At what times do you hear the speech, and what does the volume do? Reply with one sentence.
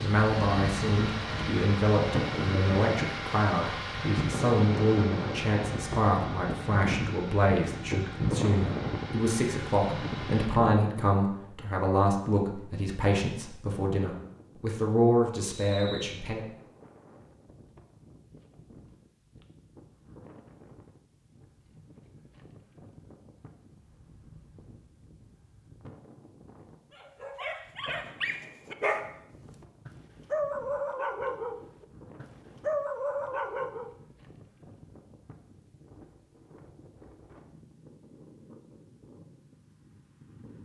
The speech can be heard from 0.0 to 16.4 s, at a steady volume.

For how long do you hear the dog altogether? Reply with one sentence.
You can hear the dog for 7 seconds altogether.